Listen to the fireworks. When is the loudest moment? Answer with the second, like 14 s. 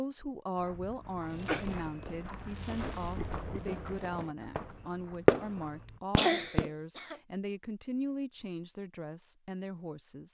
5 s.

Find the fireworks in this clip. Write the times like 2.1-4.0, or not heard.
1.2-6.7.